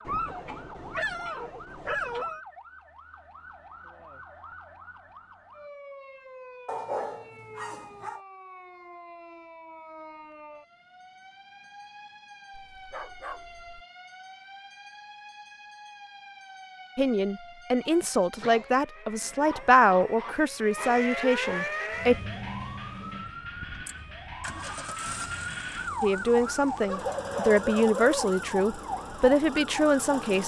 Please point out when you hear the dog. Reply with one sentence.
The dog can be heard from 0.1 to 2.4 s, from 6.7 to 8.2 s, from 12.5 to 13.8 s, from 19.2 to 21.9 s and from 26.8 to 28.4 s.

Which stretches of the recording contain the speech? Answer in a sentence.
You can hear the speech from 16.9 to 22.1 s and from 26.0 to 30.4 s.